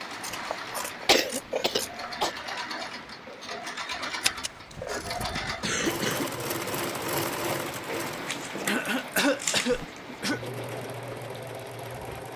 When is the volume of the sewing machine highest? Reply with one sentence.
The loudest moment of the sewing machine is at 7 seconds.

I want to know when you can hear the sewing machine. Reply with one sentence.
You can hear the sewing machine from 0.0 to 12.3 s.